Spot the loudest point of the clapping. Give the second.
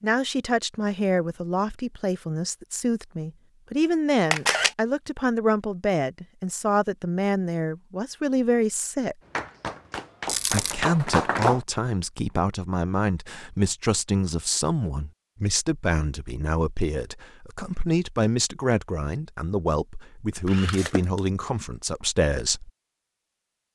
11 s.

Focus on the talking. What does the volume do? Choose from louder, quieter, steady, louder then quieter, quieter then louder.
steady.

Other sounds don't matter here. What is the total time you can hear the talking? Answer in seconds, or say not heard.
21 s.